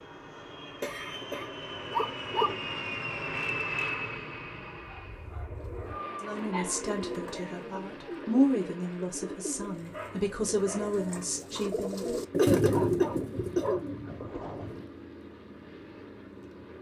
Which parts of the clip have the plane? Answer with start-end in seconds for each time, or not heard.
0.0-16.7.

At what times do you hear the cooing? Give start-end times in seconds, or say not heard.
5.5-14.9.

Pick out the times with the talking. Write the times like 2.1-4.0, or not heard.
6.2-12.2.